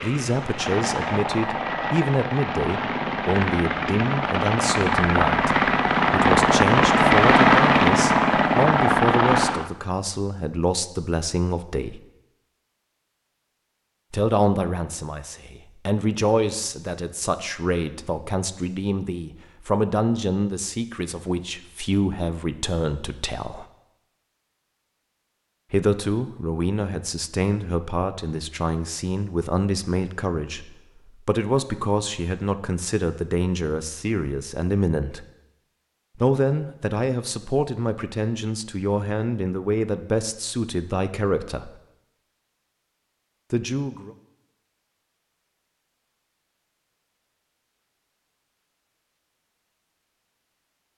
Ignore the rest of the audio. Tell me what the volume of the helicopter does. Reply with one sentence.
The loudness of the helicopter goes up.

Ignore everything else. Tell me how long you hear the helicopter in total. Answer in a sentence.
You can hear the helicopter for 10 seconds altogether.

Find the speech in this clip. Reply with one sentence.
You can hear the speech from 0.0 to 12.0 s, from 14.1 to 23.6 s, from 25.7 to 35.2 s, from 36.1 to 41.8 s and from 43.5 to 44.1 s.